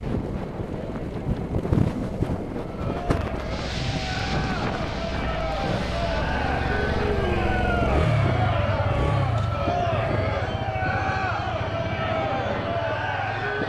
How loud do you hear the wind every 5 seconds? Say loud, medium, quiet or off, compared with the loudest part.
loud, medium, medium.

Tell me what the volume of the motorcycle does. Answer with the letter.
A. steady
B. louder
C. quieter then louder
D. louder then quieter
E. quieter
D.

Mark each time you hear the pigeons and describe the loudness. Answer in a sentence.
The pigeons can't be heard in this clip.